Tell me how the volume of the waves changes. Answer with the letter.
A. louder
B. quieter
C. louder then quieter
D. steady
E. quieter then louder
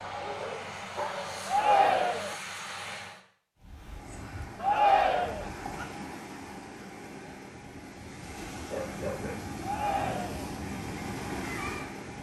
A.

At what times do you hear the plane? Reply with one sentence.
The plane can be heard from 0.0 to 3.2 s.